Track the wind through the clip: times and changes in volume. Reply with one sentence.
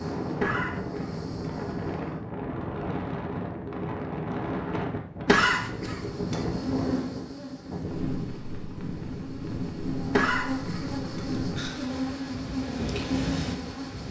You can hear the wind from 0.0 to 14.0 s, at a steady volume.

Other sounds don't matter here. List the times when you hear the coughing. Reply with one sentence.
The coughing can be heard from 0.3 to 1.6 s, from 5.2 to 6.5 s and from 10.1 to 11.3 s.